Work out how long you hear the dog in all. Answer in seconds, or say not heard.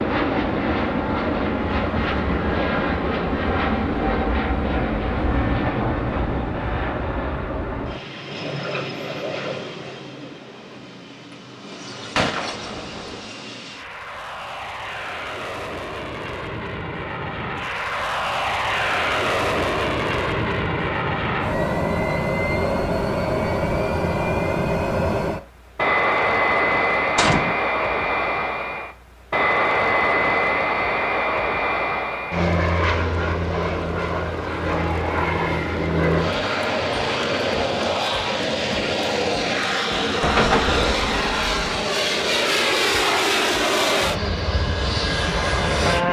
not heard.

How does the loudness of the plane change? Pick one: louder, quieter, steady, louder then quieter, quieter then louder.
quieter then louder.